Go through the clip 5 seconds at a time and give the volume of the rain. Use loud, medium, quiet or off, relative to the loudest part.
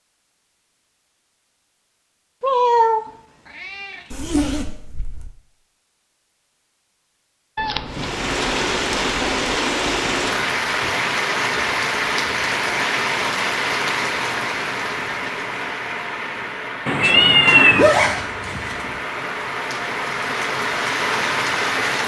off, loud, loud, medium, loud.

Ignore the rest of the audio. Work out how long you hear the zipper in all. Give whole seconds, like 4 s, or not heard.
3 s.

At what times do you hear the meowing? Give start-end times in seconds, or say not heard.
2.4-4.4, 7.5-9.6, 16.9-17.9.